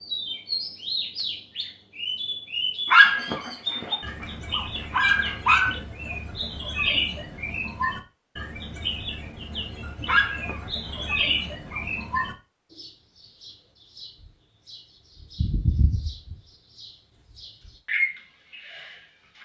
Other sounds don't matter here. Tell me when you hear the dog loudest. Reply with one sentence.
The loudest moment of the dog is at 3 seconds.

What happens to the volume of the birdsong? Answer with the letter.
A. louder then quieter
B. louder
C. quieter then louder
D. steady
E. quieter
D.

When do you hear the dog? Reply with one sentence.
You can hear the dog from 2.9 to 5.8 s and from 10.1 to 11.8 s.